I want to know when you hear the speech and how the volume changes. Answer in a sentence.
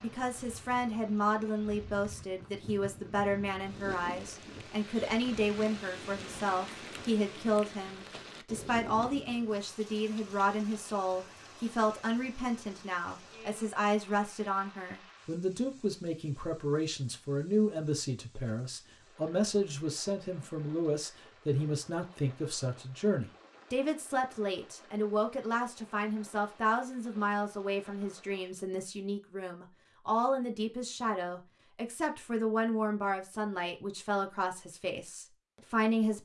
The speech can be heard from 0.0 to 36.2 s, at a steady volume.